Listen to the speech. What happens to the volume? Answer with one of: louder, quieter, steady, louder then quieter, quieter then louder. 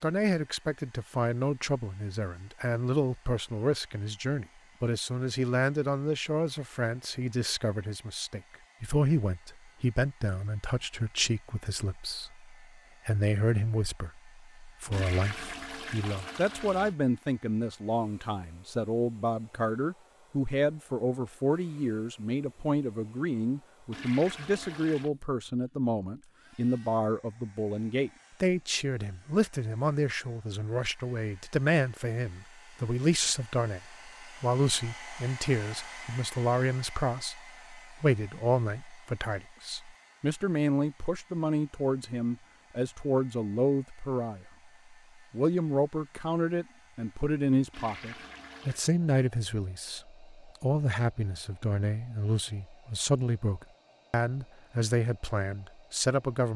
steady.